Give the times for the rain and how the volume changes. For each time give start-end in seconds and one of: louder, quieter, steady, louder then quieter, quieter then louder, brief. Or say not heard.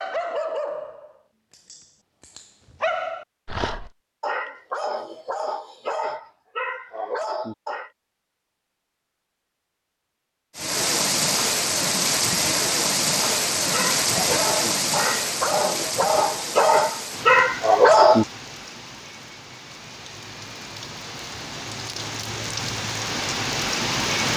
10.6-24.3 quieter then louder.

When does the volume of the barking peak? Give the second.
18 s.